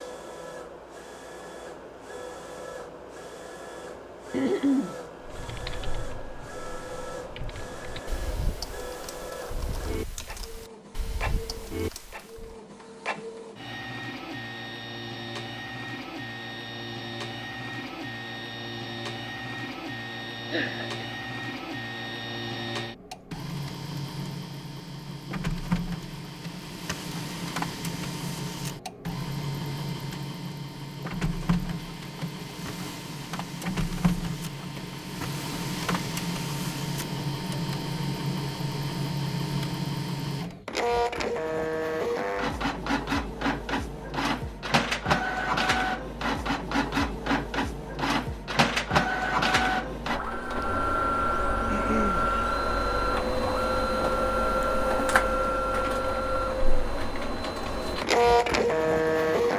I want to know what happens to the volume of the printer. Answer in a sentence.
The volume of the printer goes up.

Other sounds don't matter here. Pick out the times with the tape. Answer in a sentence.
The tape can't be heard in this clip.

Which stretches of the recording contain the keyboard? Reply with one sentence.
The keyboard can be heard from 5.2 to 12.6 s.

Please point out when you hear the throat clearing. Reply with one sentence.
You can hear the throat clearing from 4.3 to 5.0 s, from 20.5 to 21.1 s and from 51.7 to 52.3 s.